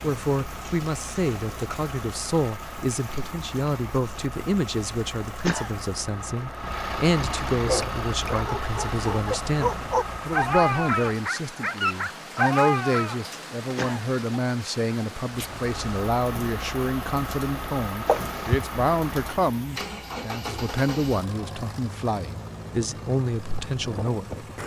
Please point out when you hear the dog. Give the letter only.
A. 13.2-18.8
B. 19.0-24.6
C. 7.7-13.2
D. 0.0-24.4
C.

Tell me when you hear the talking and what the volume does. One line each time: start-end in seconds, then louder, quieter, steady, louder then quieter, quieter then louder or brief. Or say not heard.
0.0-24.4 steady.